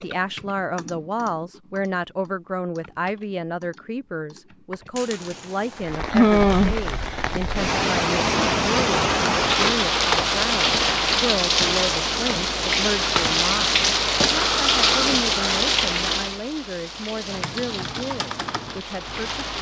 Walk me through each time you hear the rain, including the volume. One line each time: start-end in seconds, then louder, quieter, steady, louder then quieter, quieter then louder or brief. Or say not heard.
5.0-19.5 quieter.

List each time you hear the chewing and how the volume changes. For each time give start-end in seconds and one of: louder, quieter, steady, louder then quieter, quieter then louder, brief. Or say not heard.
not heard.